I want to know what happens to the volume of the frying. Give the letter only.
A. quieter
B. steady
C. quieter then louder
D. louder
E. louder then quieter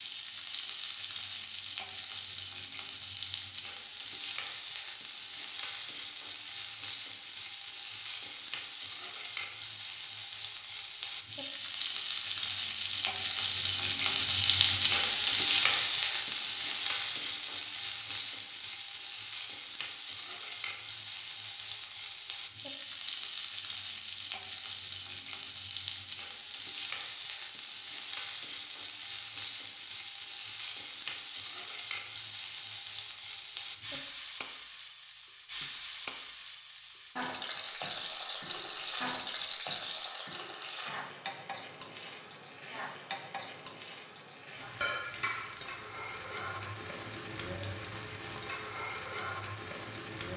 E.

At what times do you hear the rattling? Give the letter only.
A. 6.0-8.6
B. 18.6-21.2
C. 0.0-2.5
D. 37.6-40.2
D.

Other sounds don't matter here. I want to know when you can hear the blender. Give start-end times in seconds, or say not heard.
not heard.